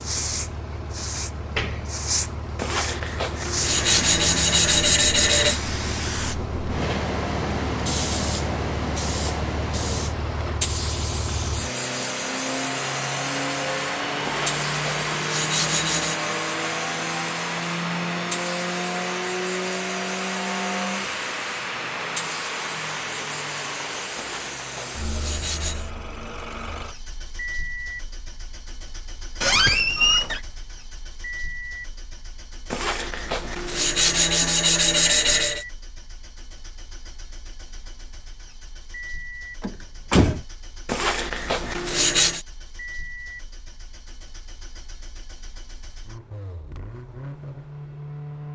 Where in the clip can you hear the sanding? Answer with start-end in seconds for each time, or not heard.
2.5-5.6, 14.2-16.2, 24.1-25.9, 32.7-35.6, 40.9-42.5.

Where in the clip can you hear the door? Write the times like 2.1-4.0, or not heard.
1.4-2.0, 29.4-30.4, 39.6-40.5.